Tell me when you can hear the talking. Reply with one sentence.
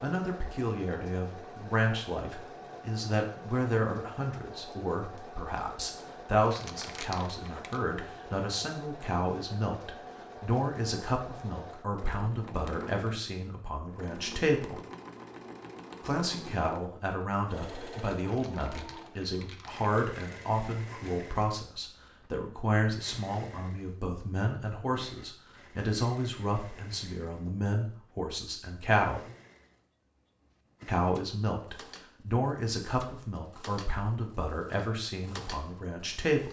You can hear the talking from 0.0 to 14.8 s, from 16.0 to 29.2 s and from 30.9 to 36.4 s.